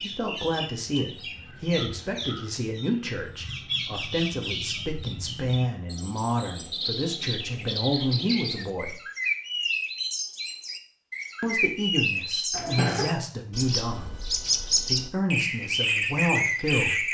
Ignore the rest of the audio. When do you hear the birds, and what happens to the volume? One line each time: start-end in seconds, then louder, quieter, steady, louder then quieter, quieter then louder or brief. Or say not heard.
0.0-17.0 louder.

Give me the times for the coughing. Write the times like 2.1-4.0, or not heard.
12.5-13.2.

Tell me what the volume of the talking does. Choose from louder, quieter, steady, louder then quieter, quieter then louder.
steady.